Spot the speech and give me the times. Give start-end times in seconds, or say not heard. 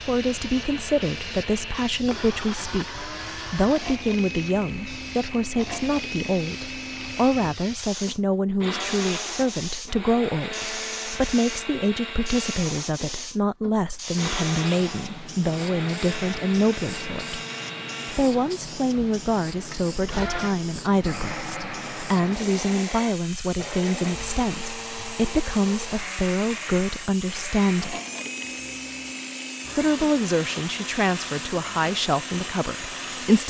0.1-17.4, 18.1-28.0, 29.8-33.4.